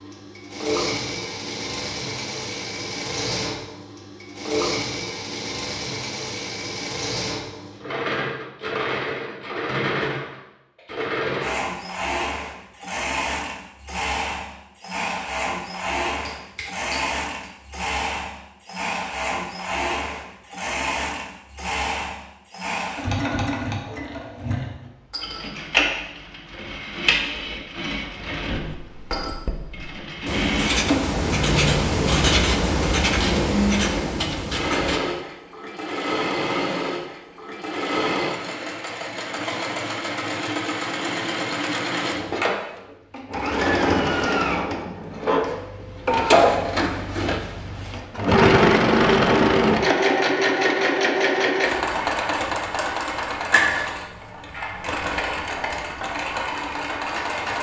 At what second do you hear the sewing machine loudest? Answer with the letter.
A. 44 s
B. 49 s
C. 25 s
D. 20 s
B.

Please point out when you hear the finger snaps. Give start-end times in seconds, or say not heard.
16.1-17.5.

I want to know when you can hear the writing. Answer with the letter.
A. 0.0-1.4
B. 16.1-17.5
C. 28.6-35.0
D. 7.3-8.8
C.